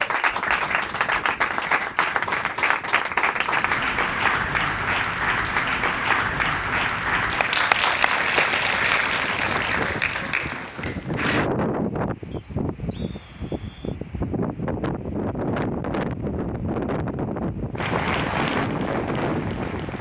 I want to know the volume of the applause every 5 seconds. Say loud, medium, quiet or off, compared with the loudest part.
loud, loud, medium, medium.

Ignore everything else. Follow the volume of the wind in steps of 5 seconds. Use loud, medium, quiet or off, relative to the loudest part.
quiet, medium, loud, loud.